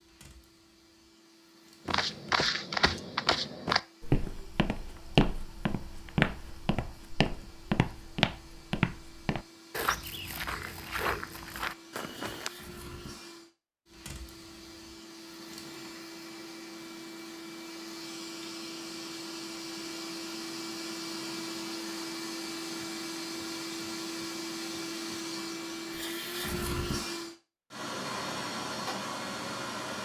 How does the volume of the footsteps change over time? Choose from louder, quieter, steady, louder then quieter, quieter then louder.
quieter.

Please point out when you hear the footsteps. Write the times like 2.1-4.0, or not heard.
1.9-12.5.